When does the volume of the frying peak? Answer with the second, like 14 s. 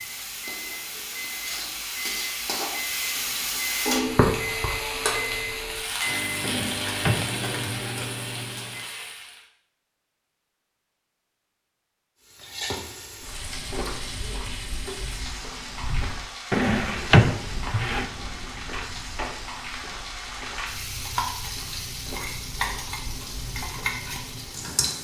4 s.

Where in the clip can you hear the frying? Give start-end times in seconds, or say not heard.
0.0-9.4, 12.2-25.0.